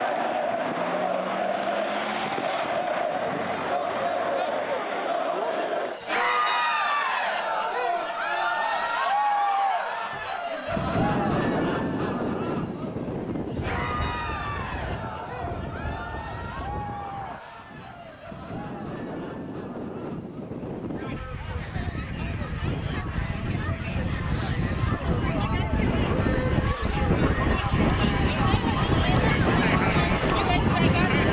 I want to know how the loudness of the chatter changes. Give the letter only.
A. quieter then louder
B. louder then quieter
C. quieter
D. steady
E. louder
A.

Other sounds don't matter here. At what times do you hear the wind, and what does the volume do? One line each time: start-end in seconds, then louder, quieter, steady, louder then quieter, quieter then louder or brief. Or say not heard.
10.7-31.2 quieter then louder.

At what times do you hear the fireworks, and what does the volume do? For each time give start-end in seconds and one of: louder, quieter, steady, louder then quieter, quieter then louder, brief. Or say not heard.
not heard.